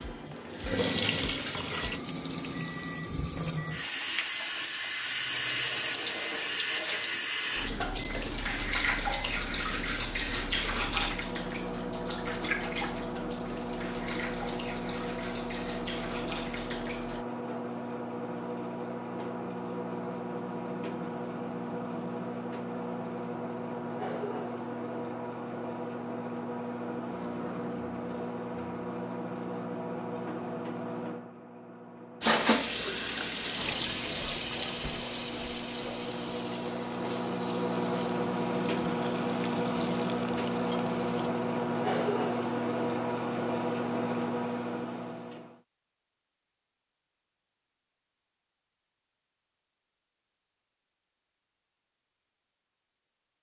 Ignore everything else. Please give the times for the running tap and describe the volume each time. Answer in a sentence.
You can hear the running tap from 0.0 to 17.2 s, getting quieter; and from 32.2 to 41.3 s, getting quieter.